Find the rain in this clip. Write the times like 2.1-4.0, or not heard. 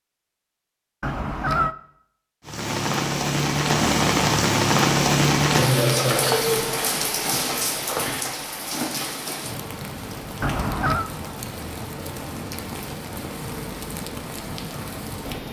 2.5-15.4.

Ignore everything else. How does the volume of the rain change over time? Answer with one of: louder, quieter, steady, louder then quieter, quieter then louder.
quieter.